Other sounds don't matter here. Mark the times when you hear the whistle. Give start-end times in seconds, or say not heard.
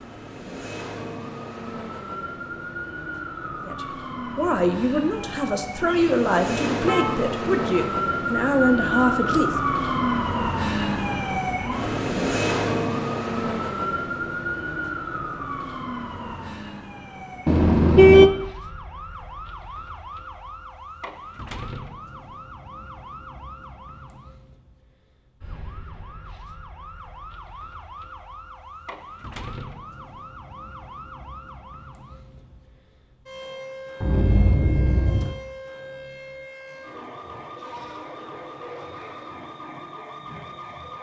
not heard.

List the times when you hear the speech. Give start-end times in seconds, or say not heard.
3.6-9.6.